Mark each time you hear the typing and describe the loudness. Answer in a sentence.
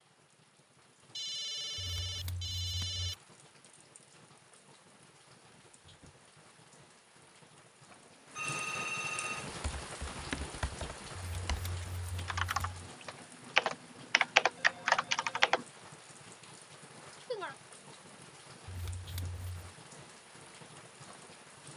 The typing can be heard from 9.4 to 15.7 s, getting quieter then louder.